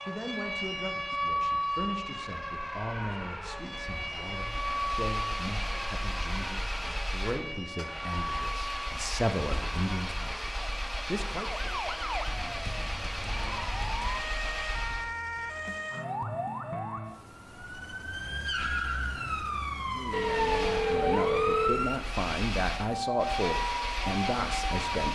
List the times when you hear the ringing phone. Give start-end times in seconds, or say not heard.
20.1-21.9.